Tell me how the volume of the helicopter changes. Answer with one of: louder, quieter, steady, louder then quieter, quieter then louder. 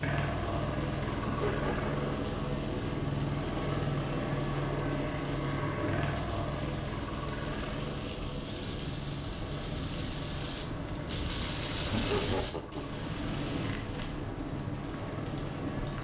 quieter.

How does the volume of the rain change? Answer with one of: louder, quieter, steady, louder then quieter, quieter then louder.
louder.